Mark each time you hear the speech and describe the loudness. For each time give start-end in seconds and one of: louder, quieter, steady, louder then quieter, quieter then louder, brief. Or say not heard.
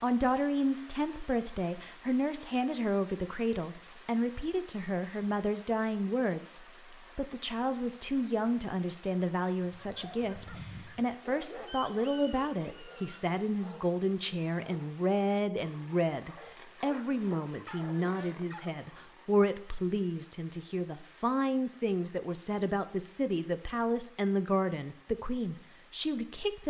0.0-26.6 steady.